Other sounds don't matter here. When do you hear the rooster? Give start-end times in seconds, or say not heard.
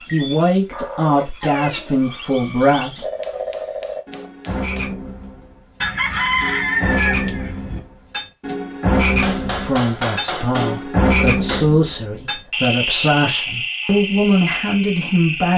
5.8-7.8.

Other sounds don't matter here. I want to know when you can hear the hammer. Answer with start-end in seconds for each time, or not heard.
3.0-4.9, 9.0-11.7.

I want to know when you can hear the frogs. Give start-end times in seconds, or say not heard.
0.0-15.5.